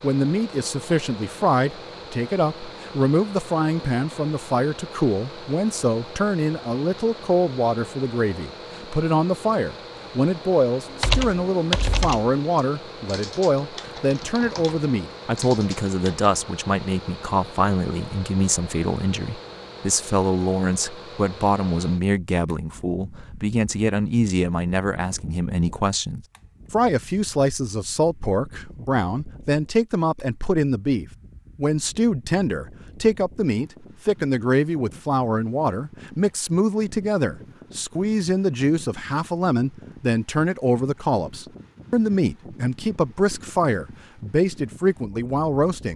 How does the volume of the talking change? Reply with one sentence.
The volume of the talking stays about the same.